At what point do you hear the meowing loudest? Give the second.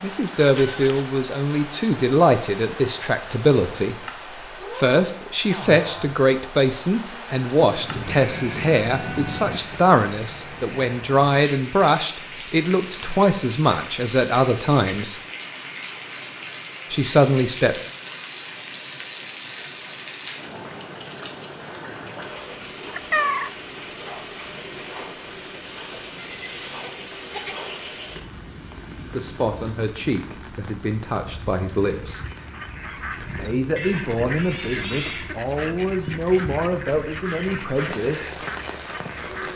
23 s.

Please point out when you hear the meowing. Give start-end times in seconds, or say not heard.
0.3-1.1, 22.9-23.5, 33.8-35.3.